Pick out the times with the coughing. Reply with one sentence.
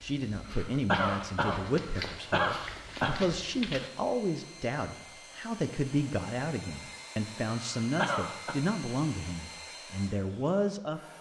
The coughing can be heard from 0.5 to 3.2 s and from 7.8 to 8.6 s.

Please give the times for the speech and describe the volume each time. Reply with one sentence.
You can hear the speech from 0.0 to 11.1 s, at a steady volume.